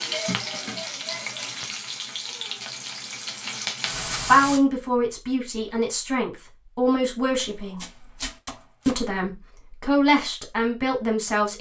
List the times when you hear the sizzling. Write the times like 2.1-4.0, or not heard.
0.0-4.6.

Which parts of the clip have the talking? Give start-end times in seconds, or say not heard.
4.2-7.8, 8.8-11.5.